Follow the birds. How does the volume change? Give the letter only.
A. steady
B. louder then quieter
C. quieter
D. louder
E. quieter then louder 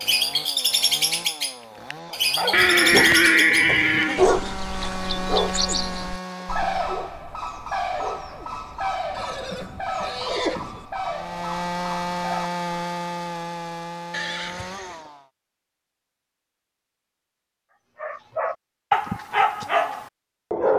C.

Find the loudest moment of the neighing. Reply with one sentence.
The volume of the neighing peaks at 3 seconds.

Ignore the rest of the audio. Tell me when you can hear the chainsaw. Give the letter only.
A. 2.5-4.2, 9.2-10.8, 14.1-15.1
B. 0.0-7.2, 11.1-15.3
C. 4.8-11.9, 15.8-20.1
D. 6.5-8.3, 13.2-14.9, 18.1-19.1
B.